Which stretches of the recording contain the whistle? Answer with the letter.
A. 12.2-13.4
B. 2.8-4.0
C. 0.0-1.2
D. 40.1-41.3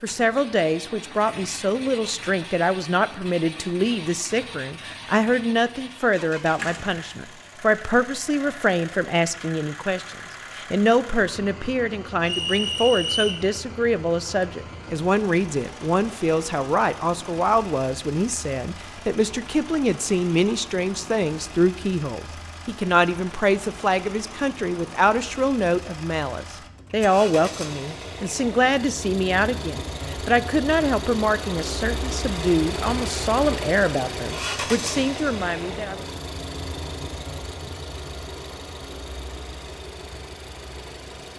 A.